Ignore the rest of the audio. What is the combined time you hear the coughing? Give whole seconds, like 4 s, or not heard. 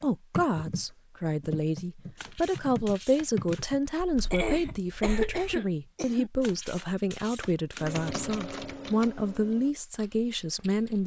2 s.